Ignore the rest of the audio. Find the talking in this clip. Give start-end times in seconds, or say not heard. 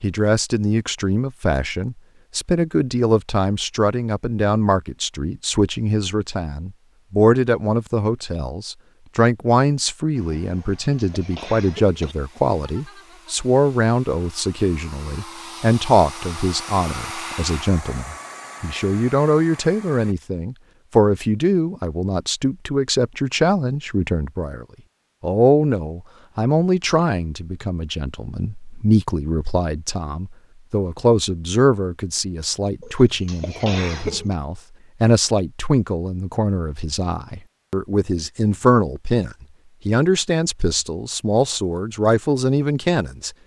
0.0-43.3.